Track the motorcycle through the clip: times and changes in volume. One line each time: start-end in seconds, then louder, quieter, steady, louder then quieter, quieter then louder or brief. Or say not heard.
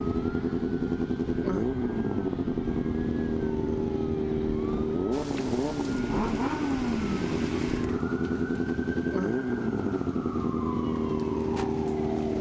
0.0-12.3 steady.